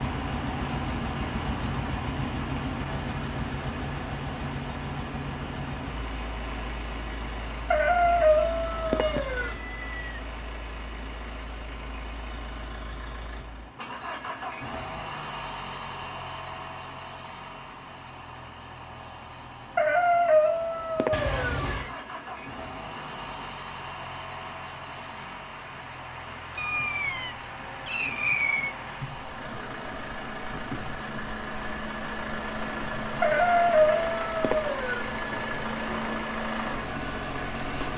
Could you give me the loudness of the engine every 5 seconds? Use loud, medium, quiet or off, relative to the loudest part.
loud, medium, medium, medium, medium, medium, loud, loud.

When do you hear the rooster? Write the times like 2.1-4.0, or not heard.
7.7-9.6, 19.8-21.6, 33.2-35.0.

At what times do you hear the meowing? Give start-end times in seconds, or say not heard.
9.0-10.2, 21.1-21.9, 26.6-28.8.